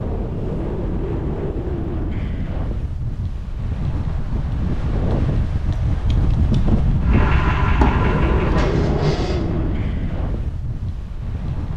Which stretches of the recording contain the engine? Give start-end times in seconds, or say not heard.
7.0-9.9.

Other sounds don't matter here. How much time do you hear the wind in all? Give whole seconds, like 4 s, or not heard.
12 s.